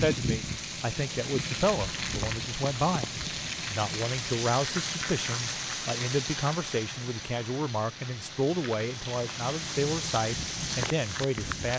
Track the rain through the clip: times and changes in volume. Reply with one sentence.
You can hear the rain from 0.0 to 11.7 s, getting quieter then louder.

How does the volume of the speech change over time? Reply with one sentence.
The volume of the speech stays about the same.